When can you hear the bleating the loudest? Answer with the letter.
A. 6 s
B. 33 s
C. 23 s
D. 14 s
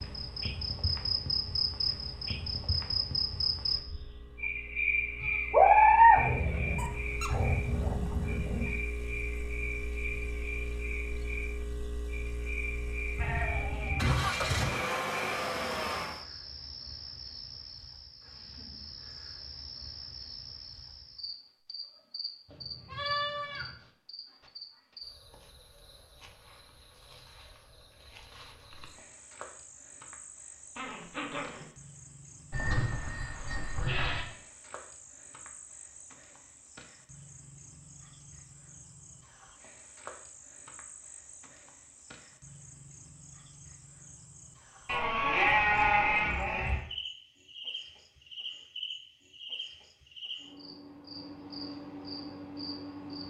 A.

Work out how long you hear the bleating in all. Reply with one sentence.
The bleating can be heard for 8 seconds in total.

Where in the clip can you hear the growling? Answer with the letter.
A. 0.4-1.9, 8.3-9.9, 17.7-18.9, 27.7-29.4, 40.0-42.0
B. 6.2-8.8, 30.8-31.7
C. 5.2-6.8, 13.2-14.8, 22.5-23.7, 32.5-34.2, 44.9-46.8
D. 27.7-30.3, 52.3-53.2
B.